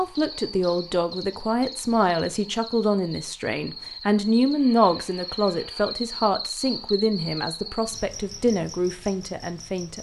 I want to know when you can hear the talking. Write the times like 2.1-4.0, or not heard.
0.0-9.9.